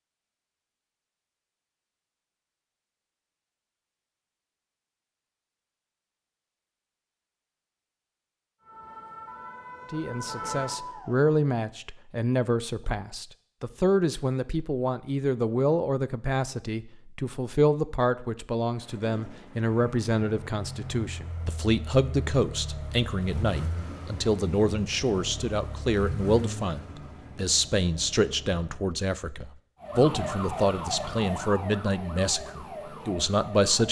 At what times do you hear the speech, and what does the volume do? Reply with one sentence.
You can hear the speech from 9.9 to 33.8 s, at a steady volume.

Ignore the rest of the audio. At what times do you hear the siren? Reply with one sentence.
The siren can be heard from 8.6 to 11.3 s and from 29.8 to 33.8 s.